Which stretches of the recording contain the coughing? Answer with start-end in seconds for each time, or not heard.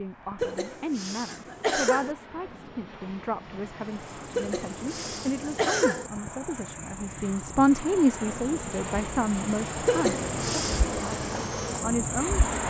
0.4-2.1, 4.3-6.1, 9.8-10.9.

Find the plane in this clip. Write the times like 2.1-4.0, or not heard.
0.0-12.6.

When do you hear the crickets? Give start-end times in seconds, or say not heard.
4.1-12.6.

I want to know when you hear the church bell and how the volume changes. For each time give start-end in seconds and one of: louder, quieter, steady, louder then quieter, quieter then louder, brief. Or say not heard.
not heard.